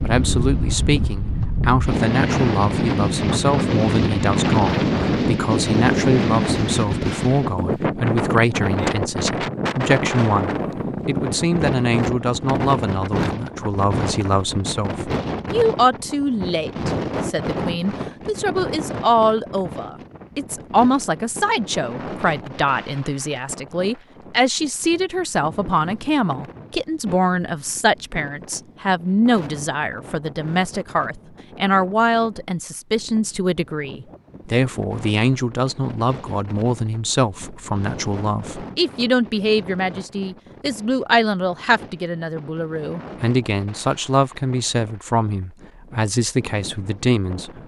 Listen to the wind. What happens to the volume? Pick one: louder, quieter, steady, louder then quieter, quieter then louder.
quieter.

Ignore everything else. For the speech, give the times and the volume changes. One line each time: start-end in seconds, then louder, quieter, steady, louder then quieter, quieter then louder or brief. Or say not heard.
0.0-47.6 steady.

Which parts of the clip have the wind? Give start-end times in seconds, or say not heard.
0.0-47.6.